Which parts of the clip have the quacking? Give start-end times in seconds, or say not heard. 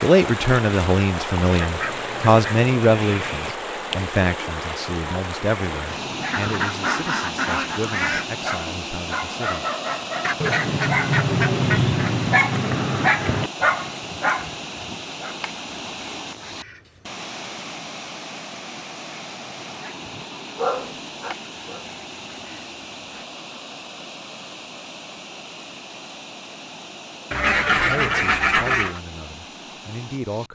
1.6-3.5, 6.3-8.2, 10.2-12.1, 15.4-17.0, 21.3-23.2, 27.3-29.0.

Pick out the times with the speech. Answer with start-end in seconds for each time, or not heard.
0.0-9.7, 27.7-30.5.